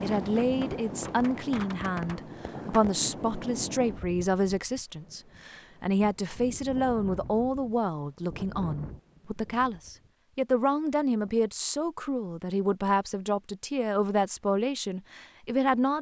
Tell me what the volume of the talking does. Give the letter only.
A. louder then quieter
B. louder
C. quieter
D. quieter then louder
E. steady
E.